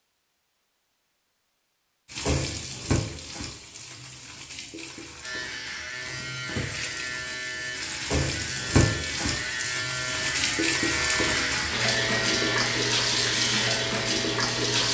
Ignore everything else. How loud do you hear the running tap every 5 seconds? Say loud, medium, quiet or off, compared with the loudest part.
medium, medium, loud.